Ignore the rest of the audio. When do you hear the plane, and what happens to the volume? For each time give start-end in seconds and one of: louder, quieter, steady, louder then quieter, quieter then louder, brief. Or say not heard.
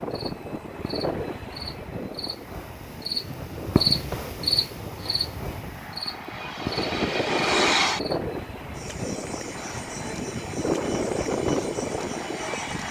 0.0-12.8 quieter then louder.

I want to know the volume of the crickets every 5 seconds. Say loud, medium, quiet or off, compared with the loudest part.
loud, medium, quiet.